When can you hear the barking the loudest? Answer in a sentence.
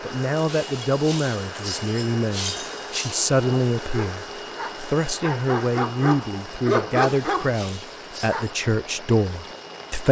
The loudest moment of the barking is at 7 seconds.